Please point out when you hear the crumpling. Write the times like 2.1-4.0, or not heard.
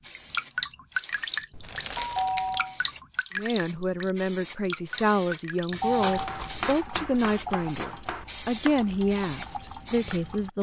1.6-2.6, 5.7-6.7.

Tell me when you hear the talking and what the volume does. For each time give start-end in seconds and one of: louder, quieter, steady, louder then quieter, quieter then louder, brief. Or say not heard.
3.4-10.5 steady.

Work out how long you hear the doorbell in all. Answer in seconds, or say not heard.
2 s.